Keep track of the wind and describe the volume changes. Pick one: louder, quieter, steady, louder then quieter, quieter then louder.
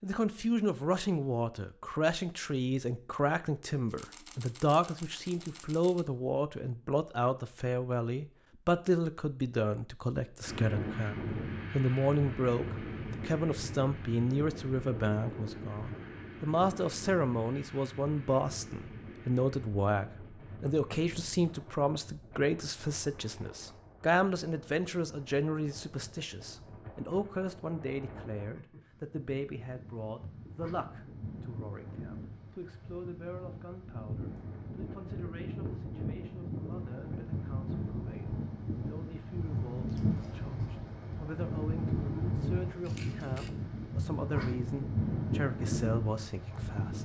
quieter then louder.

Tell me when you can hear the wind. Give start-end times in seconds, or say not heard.
10.4-46.9.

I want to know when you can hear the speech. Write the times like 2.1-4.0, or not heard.
0.0-46.9.